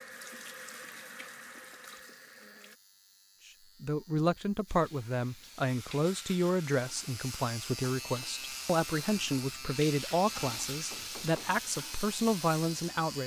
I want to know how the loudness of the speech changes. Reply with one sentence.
The volume of the speech stays about the same.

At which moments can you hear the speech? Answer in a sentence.
You can hear the speech from 3.8 to 13.2 s.